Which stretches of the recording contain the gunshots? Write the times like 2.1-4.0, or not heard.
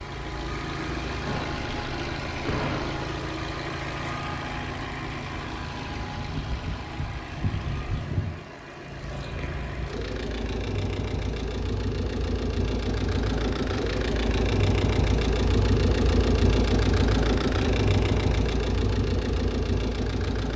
1.2-3.0.